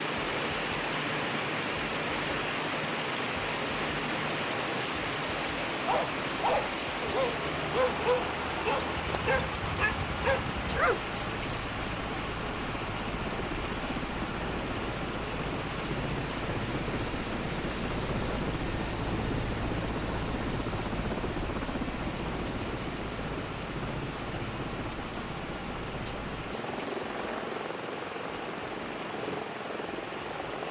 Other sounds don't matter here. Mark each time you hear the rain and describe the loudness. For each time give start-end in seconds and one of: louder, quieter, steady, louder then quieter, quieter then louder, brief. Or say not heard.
0.0-30.6 quieter.